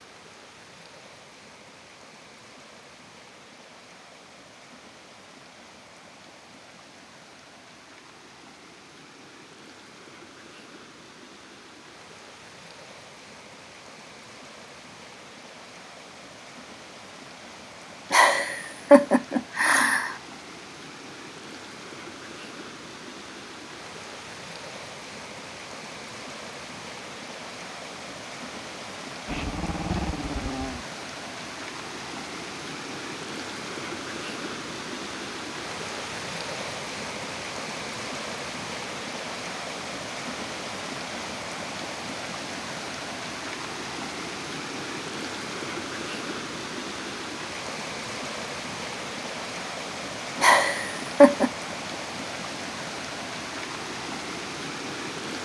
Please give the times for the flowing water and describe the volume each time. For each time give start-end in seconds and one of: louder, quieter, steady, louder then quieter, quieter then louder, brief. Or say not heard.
0.0-55.3 louder.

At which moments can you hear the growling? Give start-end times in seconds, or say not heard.
29.2-30.9.